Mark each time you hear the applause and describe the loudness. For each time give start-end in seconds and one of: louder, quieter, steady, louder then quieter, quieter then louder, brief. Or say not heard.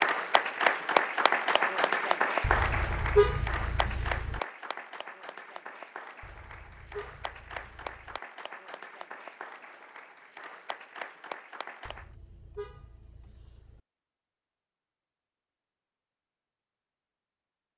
0.0-12.1 quieter.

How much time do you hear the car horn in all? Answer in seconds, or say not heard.
6 s.